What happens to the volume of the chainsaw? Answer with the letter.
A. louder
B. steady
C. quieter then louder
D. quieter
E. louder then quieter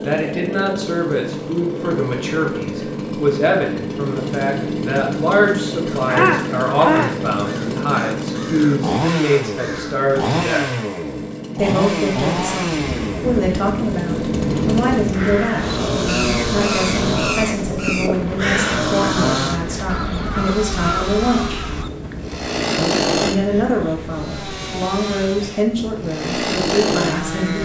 B.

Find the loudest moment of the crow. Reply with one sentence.
The volume of the crow peaks at 6 seconds.